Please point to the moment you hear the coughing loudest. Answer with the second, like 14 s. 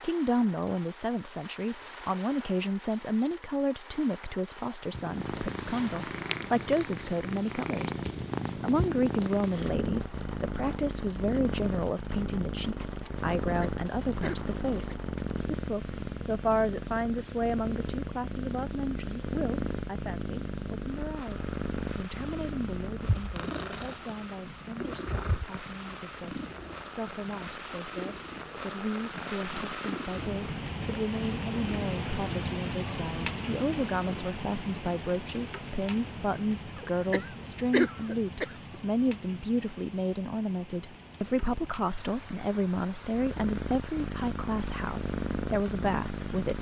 38 s.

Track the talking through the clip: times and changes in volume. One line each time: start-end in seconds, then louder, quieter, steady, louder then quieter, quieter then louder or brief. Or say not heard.
0.0-46.5 quieter then louder.